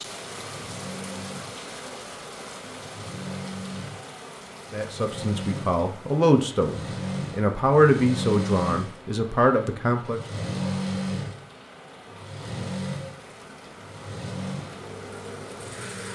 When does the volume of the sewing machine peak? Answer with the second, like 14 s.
11 s.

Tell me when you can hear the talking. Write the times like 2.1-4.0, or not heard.
4.7-10.2.